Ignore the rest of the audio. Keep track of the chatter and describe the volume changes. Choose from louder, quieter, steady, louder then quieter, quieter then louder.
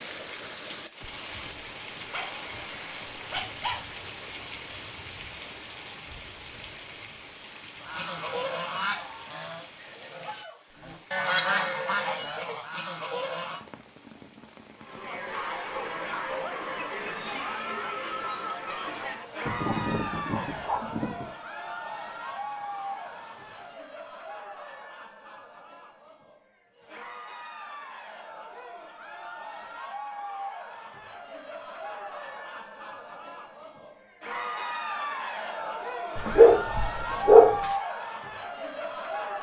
quieter then louder.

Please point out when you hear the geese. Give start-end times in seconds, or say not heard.
7.8-13.6.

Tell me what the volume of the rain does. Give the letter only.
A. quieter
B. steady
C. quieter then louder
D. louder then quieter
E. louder
A.